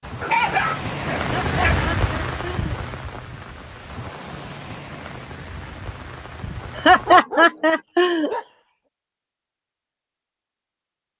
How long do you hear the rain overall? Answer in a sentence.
You can hear the rain for 7 seconds altogether.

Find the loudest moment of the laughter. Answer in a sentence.
The volume of the laughter peaks at 7 seconds.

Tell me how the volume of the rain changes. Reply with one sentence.
The loudness of the rain goes down.